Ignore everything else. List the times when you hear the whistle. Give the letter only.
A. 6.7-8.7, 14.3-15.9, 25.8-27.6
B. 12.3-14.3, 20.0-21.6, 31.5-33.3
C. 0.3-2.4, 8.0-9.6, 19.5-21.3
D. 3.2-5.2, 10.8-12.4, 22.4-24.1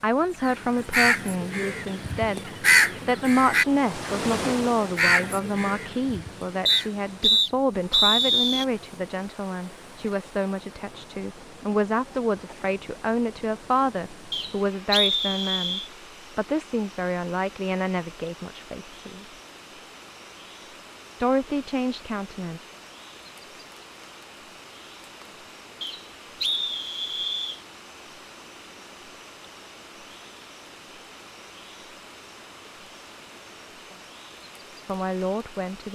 A.